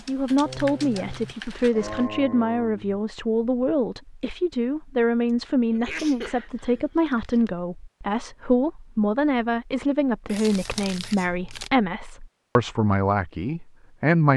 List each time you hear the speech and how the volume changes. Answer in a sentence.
The speech can be heard from 0.1 to 14.3 s, at a steady volume.